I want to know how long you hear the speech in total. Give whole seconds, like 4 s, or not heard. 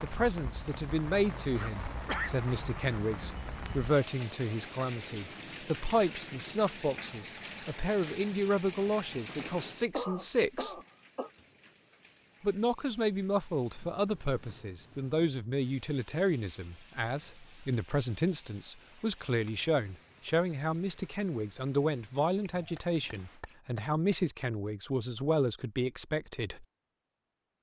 25 s.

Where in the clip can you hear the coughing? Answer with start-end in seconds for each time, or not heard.
1.6-2.3, 9.9-11.3, 22.4-24.1.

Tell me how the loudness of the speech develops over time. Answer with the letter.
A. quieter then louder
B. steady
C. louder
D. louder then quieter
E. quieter
B.